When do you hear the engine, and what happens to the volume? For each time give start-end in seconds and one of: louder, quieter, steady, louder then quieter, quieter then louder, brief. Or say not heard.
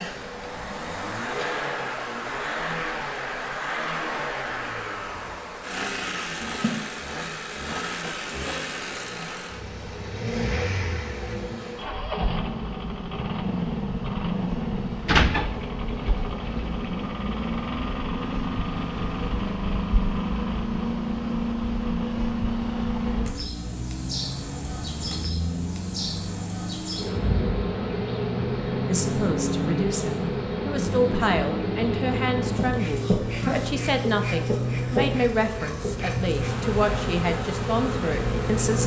0.0-38.8 steady.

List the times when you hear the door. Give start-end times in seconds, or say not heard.
15.1-16.8.